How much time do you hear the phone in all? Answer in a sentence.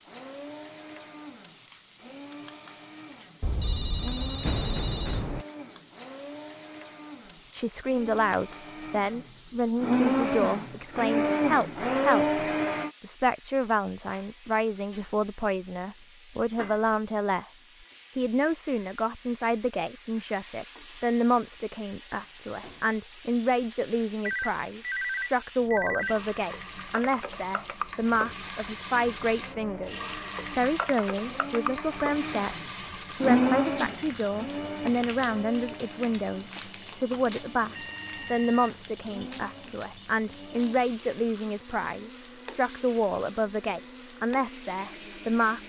The phone can be heard for 6 seconds in total.